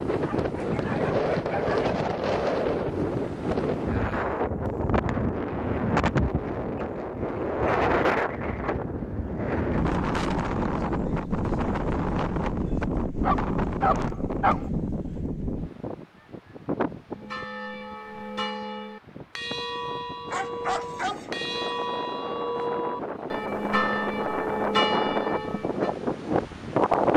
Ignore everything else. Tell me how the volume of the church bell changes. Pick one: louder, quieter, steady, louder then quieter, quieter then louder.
louder.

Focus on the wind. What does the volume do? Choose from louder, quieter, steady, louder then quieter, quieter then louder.
quieter then louder.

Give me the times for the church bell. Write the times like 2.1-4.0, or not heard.
17.1-25.9.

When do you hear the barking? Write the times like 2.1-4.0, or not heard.
0.1-1.9, 13.2-14.7, 20.3-21.4.